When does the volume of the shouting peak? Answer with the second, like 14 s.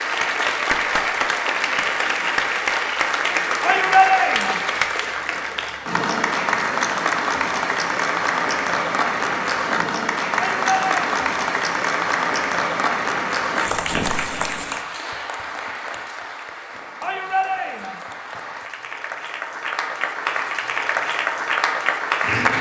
4 s.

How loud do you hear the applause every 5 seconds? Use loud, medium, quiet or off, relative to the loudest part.
loud, loud, loud, medium, loud.